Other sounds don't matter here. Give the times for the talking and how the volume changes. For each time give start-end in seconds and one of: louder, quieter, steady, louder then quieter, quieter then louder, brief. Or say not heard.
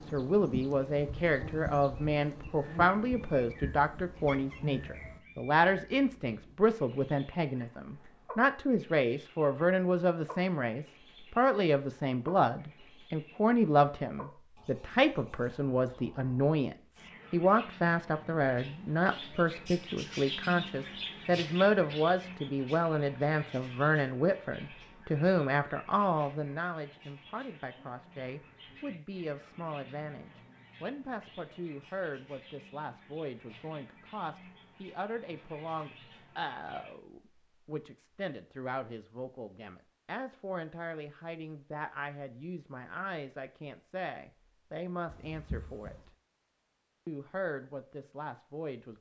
0.1-46.1 quieter
47.0-48.9 brief.